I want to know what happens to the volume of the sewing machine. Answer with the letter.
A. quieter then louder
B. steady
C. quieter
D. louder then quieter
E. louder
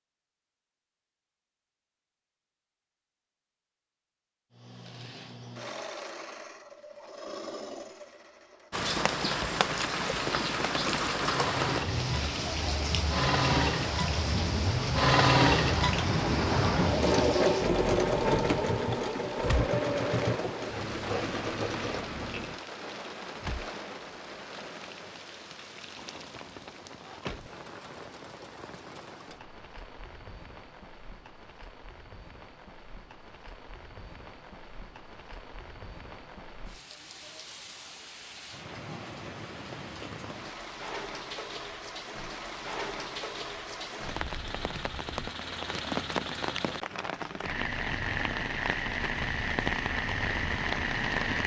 D.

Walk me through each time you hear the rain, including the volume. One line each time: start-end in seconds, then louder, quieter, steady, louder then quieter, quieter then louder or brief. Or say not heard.
8.7-51.4 quieter then louder.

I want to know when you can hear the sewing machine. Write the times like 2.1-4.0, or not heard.
4.5-22.6.